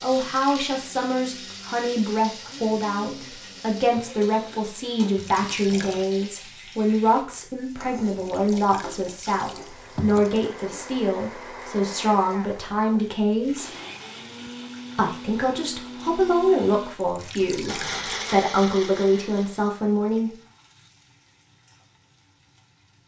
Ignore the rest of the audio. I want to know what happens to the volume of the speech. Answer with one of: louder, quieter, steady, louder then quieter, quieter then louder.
steady.